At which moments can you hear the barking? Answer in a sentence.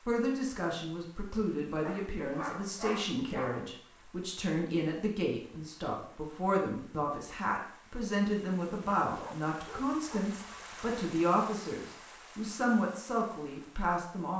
You can hear the barking from 1.9 to 3.7 s and from 9.1 to 10.7 s.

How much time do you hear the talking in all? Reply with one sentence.
The talking can be heard for 14 seconds in total.